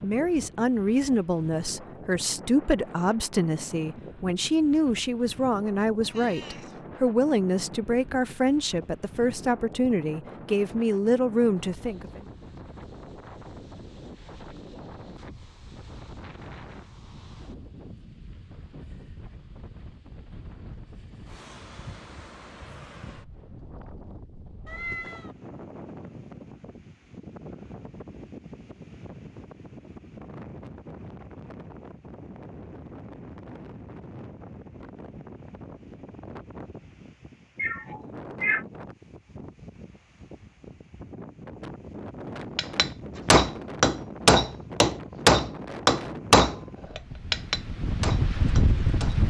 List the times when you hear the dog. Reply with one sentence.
You can't hear the dog here.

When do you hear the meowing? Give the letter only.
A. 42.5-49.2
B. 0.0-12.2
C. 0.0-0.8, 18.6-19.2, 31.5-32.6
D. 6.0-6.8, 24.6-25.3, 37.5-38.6
D.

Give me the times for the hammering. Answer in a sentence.
You can hear the hammering from 42.5 to 49.2 s.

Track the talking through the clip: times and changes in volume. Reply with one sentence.
You can hear the talking from 0.0 to 12.2 s, at a steady volume.